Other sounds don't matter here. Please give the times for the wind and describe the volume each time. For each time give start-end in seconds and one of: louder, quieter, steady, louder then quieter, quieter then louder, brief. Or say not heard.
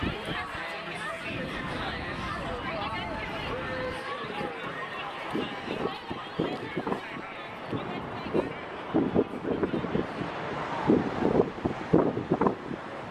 0.0-13.0 louder.